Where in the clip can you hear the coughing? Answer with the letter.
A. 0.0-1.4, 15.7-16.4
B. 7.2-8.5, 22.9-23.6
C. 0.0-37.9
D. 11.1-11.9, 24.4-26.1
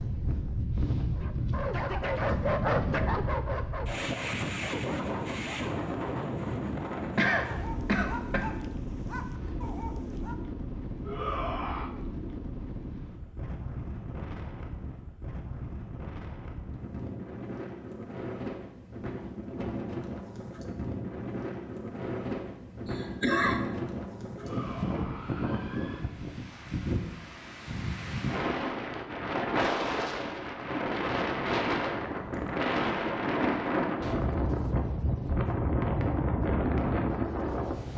B.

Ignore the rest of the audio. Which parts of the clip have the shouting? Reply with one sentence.
The shouting can be heard from 11.1 to 11.9 s and from 24.4 to 26.1 s.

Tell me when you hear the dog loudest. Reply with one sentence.
The loudest moment of the dog is at 3 seconds.